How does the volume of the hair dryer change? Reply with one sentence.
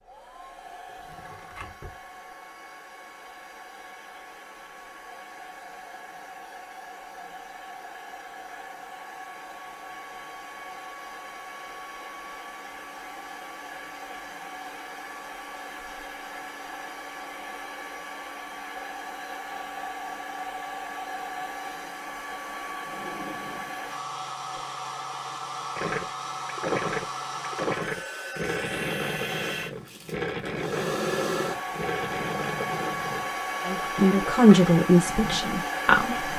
The loudness of the hair dryer goes up.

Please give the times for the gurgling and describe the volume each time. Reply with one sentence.
You can hear the gurgling from 25.8 to 35.5 s, getting quieter.